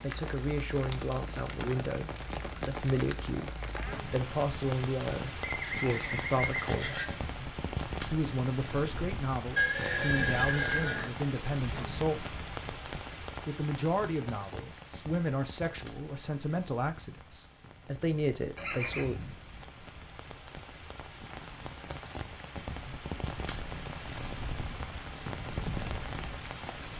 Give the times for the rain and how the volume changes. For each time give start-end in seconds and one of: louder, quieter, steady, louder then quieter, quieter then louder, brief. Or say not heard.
0.0-26.9 quieter then louder.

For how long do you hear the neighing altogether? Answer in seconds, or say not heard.
4 s.